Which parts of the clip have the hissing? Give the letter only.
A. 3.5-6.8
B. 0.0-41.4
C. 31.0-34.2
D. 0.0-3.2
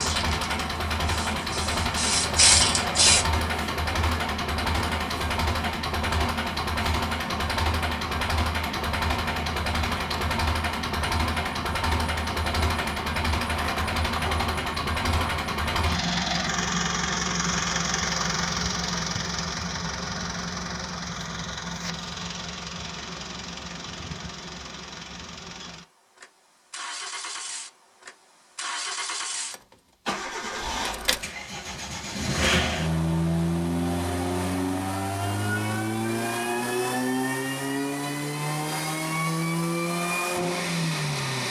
D.